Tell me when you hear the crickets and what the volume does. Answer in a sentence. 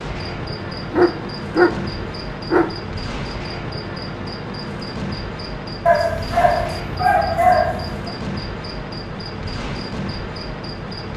The crickets can be heard from 0.0 to 11.1 s, at a steady volume.